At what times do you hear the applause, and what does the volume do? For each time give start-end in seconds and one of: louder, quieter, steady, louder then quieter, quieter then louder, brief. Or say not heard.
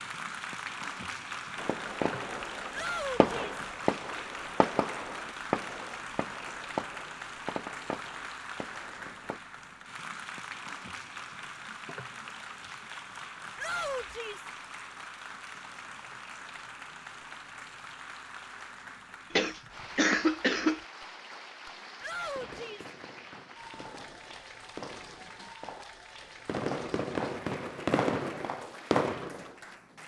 0.0-30.0 quieter.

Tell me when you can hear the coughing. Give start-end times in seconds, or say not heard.
19.3-20.8.